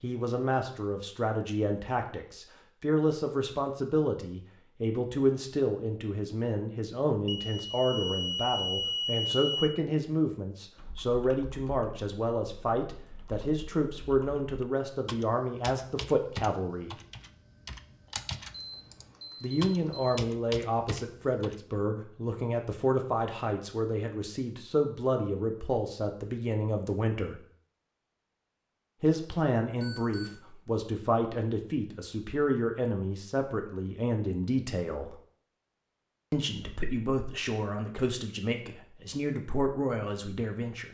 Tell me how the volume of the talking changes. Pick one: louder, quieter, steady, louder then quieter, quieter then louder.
steady.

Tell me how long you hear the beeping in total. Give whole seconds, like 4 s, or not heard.
5 s.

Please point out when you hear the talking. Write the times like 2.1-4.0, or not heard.
0.0-16.9, 19.4-27.4, 29.0-35.1, 36.3-40.8.